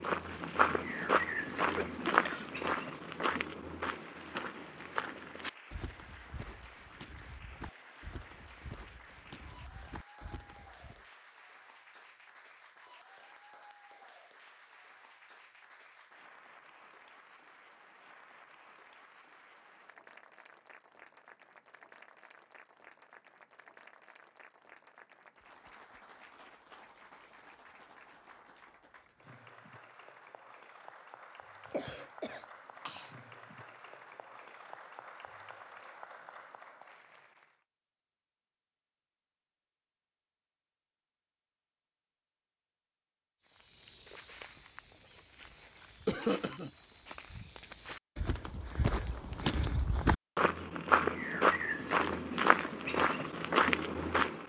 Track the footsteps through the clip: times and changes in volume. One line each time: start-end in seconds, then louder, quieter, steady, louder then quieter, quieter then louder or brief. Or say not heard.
0.0-11.1 quieter
43.5-54.4 louder.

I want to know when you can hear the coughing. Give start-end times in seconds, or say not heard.
1.8-2.6, 31.7-33.1, 46.0-46.7.